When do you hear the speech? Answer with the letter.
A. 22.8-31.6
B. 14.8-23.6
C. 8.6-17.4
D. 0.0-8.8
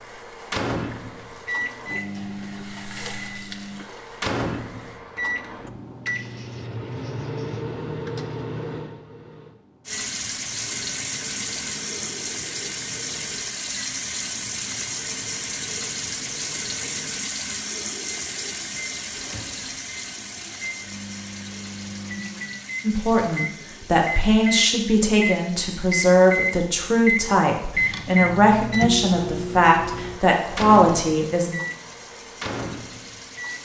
A.